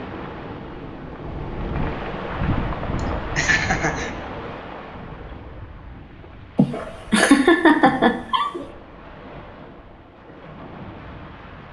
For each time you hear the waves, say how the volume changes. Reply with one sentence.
The waves can be heard from 0.0 to 11.6 s, getting quieter.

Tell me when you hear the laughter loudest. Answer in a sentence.
The volume of the laughter peaks at 7 seconds.